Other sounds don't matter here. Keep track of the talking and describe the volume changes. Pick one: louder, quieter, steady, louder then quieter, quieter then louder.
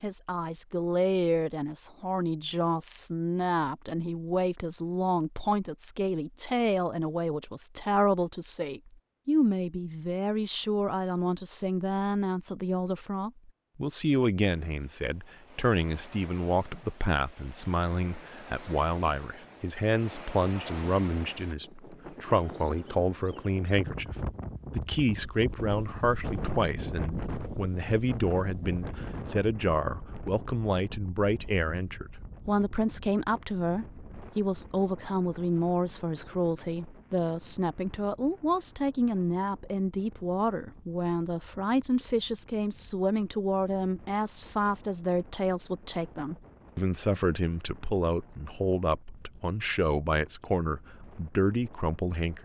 steady.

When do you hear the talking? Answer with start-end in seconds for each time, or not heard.
0.0-52.4.